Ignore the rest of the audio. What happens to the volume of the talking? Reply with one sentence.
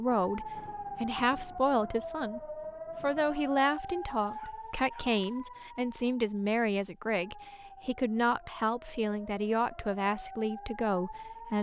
The loudness of the talking stays about the same.